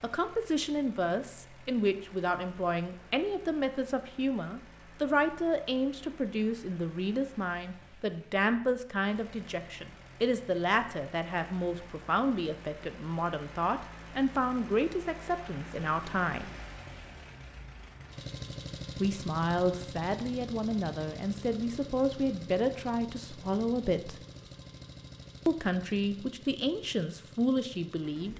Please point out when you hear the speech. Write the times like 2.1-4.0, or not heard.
0.0-16.5, 19.0-24.1, 25.4-28.3.